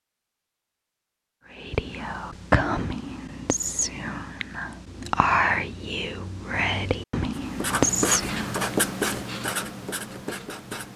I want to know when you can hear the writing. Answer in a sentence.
The writing can be heard from 7.3 to 10.9 s.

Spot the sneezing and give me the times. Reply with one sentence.
You can't hear the sneezing here.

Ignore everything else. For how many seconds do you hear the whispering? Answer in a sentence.
You can hear the whispering for 7 seconds altogether.